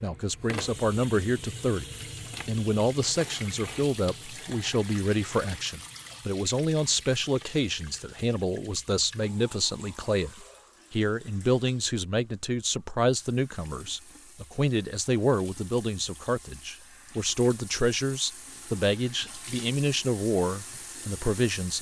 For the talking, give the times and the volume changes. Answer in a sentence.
You can hear the talking briefly from 0.0 to 1.9 s; and from 2.5 to 21.7 s, at a steady volume.